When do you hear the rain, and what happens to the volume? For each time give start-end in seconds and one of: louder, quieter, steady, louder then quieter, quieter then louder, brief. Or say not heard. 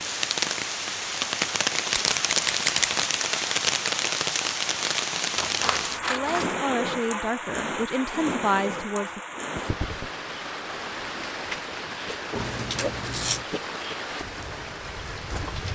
0.0-15.7 quieter.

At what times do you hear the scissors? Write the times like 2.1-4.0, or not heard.
1.9-3.0, 5.3-6.5, 12.3-13.4.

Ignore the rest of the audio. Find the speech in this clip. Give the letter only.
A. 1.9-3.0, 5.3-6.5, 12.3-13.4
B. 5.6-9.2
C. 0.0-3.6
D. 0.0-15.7
B.